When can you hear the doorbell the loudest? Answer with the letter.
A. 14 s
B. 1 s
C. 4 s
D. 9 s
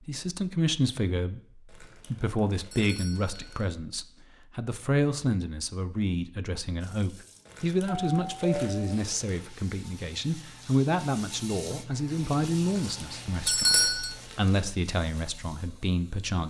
A.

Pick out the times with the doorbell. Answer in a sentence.
You can hear the doorbell from 2.7 to 3.6 s, from 7.8 to 9.1 s and from 13.4 to 14.1 s.